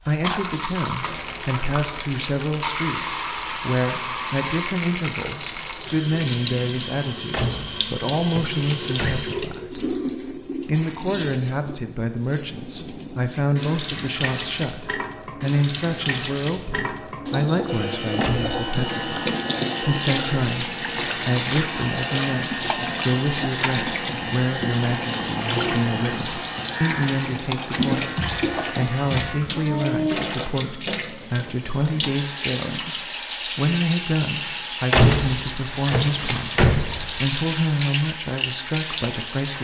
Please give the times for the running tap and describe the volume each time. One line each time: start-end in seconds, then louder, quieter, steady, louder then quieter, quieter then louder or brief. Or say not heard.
0.0-39.5 steady.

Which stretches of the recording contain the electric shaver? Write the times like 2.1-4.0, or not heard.
17.6-29.4.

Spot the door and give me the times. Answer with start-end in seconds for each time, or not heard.
7.3-9.3, 18.2-18.6, 34.9-37.3.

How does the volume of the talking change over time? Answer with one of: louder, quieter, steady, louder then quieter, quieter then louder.
steady.